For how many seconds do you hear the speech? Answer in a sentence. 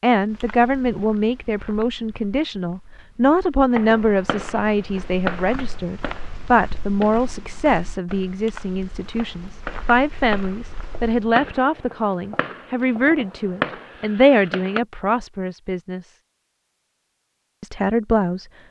The speech can be heard for 17 seconds in total.